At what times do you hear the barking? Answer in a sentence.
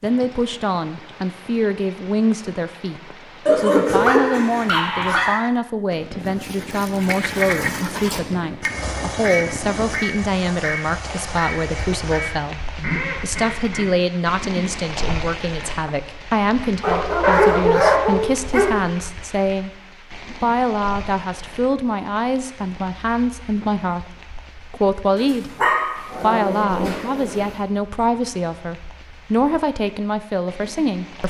You can hear the barking from 3.5 to 5.4 s, from 16.8 to 18.7 s and from 25.1 to 27.6 s.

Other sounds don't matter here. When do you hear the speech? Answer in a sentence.
You can hear the speech from 0.0 to 3.0 s, from 3.5 to 19.7 s, from 20.4 to 25.5 s and from 26.2 to 31.2 s.